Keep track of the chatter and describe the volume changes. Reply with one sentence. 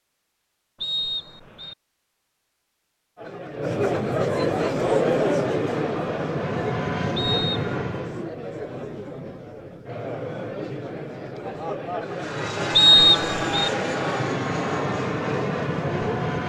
The volume of the chatter goes down.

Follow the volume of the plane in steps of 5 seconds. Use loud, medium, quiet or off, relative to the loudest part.
off, loud, loud, loud.